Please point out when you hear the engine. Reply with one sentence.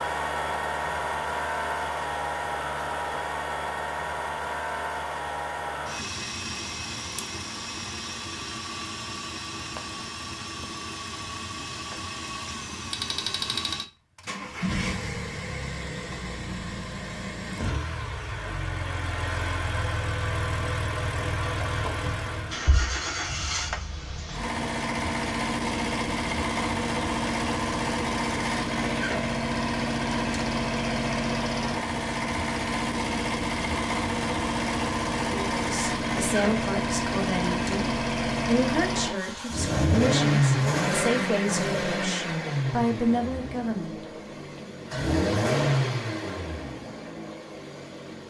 The engine can be heard from 0.0 to 48.2 s.